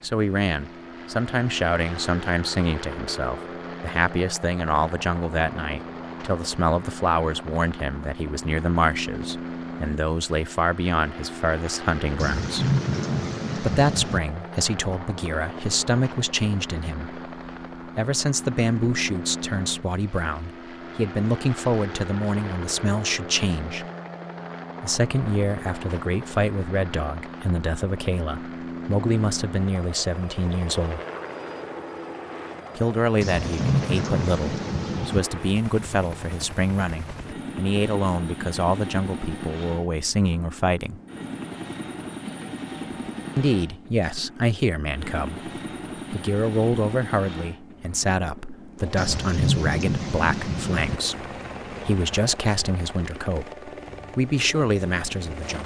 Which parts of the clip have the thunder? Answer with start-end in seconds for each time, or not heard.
12.2-14.2, 33.2-35.2, 49.0-51.0.